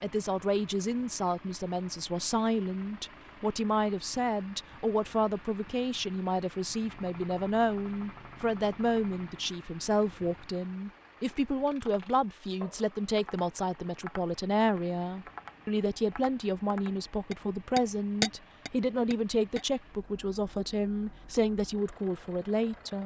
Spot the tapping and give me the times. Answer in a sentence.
The tapping can be heard from 11.8 to 19.6 s.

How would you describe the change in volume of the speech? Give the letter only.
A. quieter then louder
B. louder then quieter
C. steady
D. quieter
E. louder
C.